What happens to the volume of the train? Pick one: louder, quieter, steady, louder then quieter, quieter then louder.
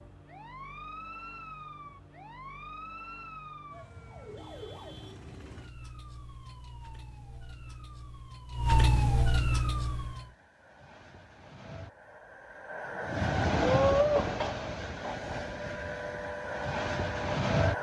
louder then quieter.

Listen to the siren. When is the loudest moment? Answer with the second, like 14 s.
9 s.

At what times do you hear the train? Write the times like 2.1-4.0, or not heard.
9.8-17.7.